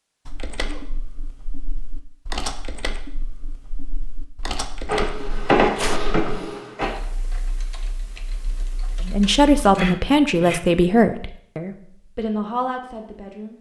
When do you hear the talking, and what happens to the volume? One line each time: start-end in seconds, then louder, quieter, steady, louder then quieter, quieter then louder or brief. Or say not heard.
9.1-13.5 quieter.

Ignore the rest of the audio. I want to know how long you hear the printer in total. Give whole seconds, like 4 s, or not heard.
2 s.